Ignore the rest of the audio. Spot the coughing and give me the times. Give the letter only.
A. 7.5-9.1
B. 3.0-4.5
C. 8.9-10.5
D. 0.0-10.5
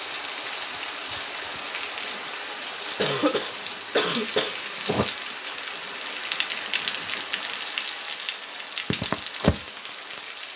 B.